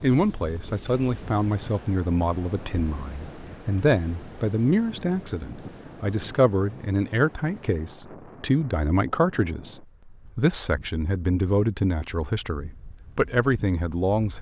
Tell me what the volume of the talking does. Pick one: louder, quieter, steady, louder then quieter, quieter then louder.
steady.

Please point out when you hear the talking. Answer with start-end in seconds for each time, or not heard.
0.0-14.3.